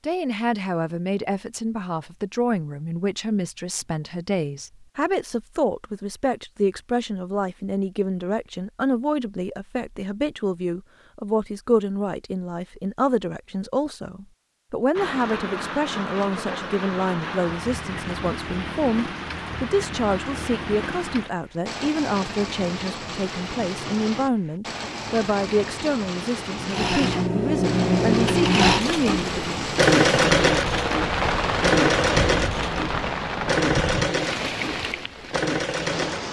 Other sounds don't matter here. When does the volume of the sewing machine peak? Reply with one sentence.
The loudest moment of the sewing machine is at 30 seconds.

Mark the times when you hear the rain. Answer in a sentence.
The rain can be heard from 14.9 to 36.2 s.